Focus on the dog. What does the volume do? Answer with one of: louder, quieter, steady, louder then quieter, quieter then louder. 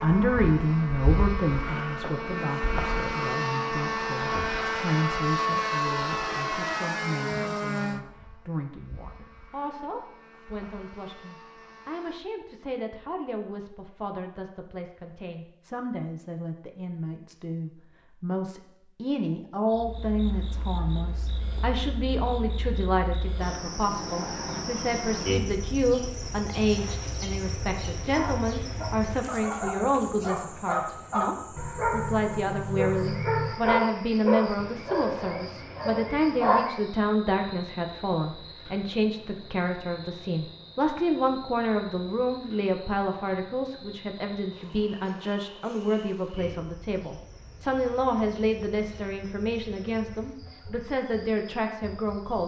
louder then quieter.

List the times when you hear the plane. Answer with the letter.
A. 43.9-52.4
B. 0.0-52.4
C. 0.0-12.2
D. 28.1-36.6
C.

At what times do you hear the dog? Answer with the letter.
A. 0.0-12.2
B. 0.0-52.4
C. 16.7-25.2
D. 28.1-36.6
D.